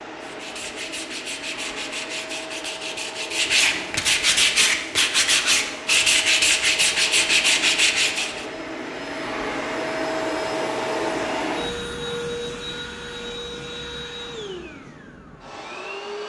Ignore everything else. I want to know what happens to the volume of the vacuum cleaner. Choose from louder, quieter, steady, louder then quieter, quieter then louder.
louder then quieter.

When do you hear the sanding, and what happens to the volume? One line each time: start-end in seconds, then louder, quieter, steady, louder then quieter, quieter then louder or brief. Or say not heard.
0.2-8.4 louder.